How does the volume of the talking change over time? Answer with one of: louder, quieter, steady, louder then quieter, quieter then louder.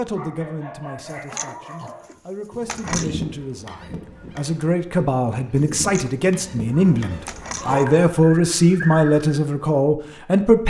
louder.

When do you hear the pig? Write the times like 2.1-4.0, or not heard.
1.1-3.2, 5.5-7.8.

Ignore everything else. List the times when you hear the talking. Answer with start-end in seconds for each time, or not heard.
0.0-10.6.